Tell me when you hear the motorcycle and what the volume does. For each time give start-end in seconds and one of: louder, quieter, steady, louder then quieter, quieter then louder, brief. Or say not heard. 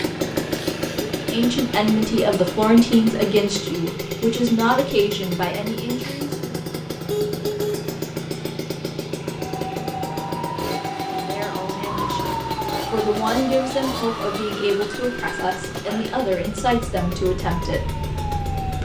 0.0-18.7 quieter.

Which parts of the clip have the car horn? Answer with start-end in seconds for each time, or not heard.
7.1-7.9.